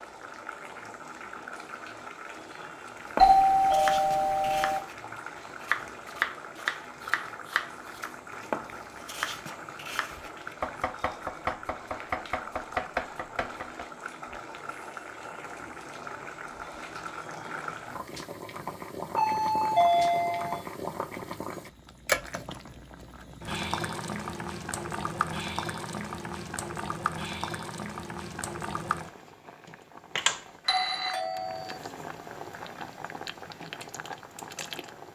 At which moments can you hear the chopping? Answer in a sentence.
You can hear the chopping from 3.0 to 13.8 s.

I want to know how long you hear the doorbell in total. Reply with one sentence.
You can hear the doorbell for 4 seconds altogether.